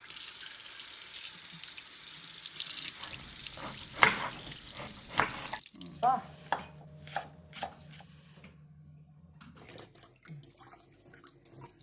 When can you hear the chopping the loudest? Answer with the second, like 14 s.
4 s.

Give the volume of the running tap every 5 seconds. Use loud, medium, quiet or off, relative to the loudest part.
loud, medium, quiet.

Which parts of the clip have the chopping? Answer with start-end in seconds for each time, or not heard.
3.0-8.1.